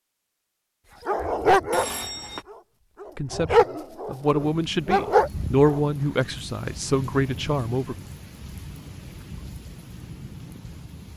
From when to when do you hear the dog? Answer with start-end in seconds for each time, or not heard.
1.1-1.9, 2.5-5.8.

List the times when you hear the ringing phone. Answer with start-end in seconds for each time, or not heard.
1.7-2.5.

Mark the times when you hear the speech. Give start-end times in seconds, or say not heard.
3.1-8.1.